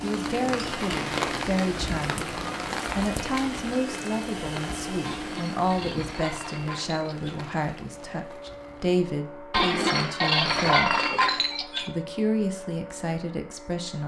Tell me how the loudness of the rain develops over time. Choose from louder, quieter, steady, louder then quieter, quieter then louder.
quieter.